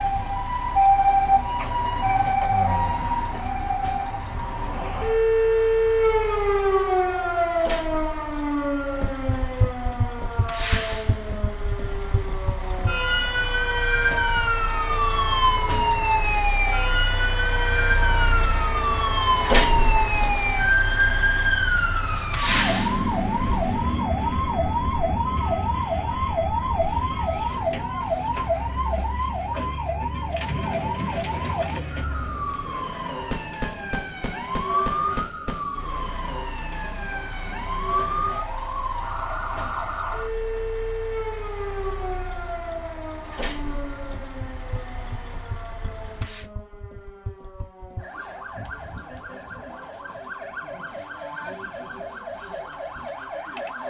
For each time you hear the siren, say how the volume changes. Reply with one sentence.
You can hear the siren from 0.0 to 53.8 s, getting quieter.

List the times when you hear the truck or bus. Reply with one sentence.
You can hear the truck or bus from 0.0 to 46.5 s.